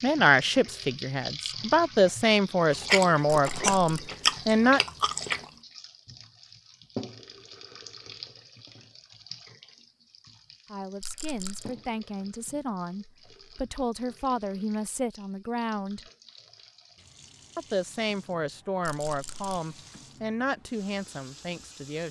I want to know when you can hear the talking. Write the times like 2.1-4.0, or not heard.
0.0-4.8, 10.7-16.1, 17.6-22.0.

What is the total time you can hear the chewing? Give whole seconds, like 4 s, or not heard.
3 s.